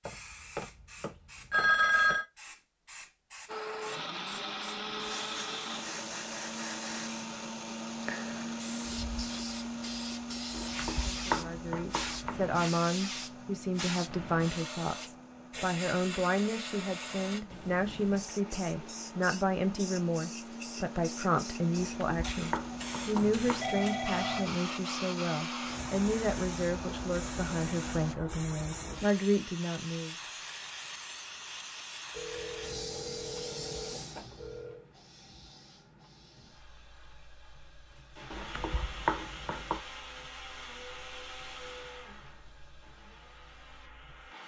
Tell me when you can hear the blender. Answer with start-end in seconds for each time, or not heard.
3.5-28.1, 37.9-44.4.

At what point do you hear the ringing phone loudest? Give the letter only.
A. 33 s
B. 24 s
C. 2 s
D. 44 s
C.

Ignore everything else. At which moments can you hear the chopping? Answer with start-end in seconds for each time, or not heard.
10.5-12.3, 21.8-23.6, 38.3-39.8.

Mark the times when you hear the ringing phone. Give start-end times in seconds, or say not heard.
0.1-2.2, 23.2-24.5, 32.1-34.9.